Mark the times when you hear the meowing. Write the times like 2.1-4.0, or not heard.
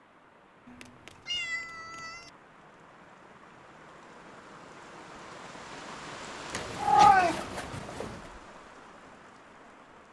0.7-2.3, 6.5-8.2.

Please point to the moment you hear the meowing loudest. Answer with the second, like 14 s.
7 s.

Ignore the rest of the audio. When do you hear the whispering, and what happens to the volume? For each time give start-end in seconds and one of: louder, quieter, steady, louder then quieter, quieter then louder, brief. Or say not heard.
not heard.